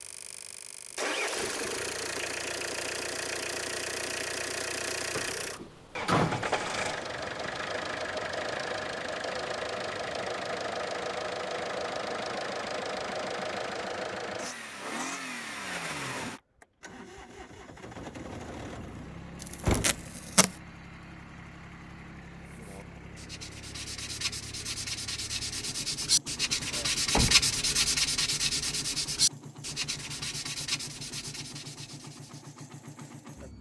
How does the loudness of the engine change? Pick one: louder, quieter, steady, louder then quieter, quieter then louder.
quieter.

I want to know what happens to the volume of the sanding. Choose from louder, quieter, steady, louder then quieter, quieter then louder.
louder then quieter.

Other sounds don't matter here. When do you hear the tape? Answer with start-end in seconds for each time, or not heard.
19.4-20.6.